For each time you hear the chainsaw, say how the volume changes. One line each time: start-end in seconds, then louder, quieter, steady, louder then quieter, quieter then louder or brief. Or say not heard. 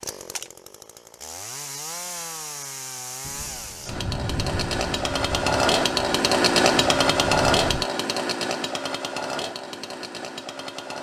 0.0-10.9 louder then quieter.